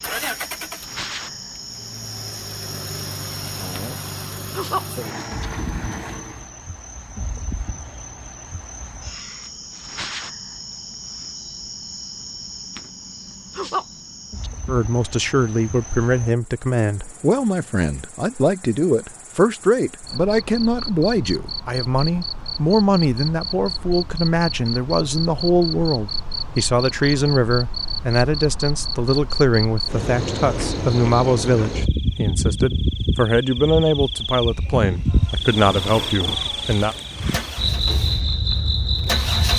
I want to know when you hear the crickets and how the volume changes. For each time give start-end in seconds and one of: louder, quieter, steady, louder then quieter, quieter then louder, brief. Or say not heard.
0.0-39.5 louder.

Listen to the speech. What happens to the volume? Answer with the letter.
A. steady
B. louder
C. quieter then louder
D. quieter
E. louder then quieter
A.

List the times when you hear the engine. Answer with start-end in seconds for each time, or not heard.
0.0-6.5, 35.5-39.5.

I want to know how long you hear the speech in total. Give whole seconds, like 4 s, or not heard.
22 s.